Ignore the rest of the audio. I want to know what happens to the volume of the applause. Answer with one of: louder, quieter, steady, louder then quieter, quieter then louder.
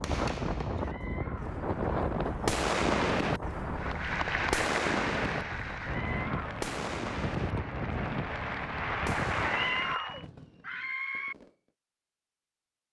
quieter then louder.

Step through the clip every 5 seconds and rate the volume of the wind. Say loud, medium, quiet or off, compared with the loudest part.
loud, loud, off.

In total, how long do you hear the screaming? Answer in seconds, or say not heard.
3 s.